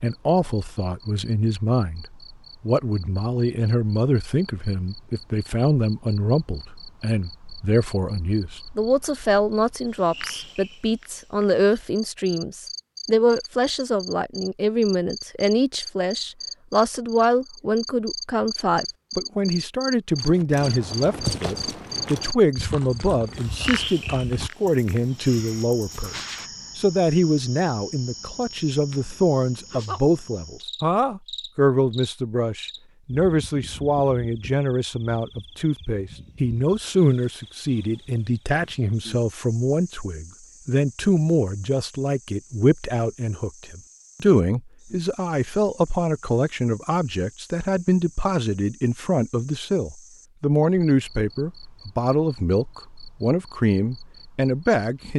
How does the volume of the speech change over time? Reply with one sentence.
The loudness of the speech stays about the same.